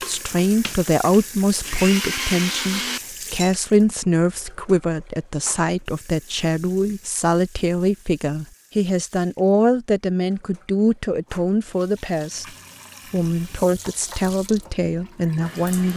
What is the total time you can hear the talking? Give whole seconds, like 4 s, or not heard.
15 s.